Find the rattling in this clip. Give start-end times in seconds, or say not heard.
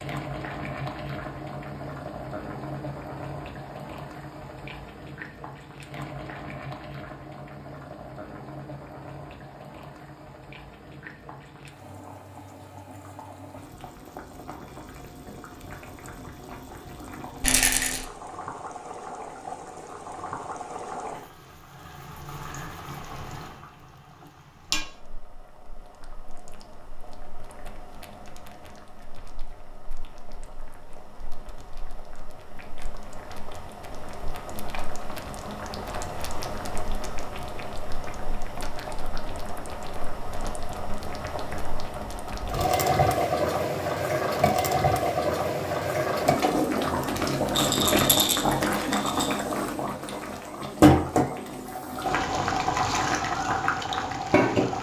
17.4-18.1, 47.5-49.4.